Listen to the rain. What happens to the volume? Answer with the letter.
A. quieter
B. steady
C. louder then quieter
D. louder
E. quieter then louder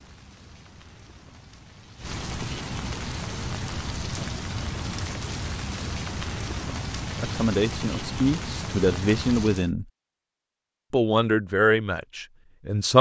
D.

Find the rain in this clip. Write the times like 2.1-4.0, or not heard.
0.0-9.7.